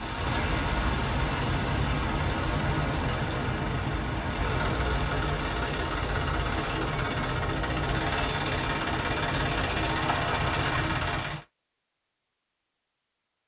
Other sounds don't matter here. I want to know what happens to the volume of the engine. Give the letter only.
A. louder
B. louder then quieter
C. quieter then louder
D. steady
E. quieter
A.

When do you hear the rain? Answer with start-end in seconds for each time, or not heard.
0.0-10.8.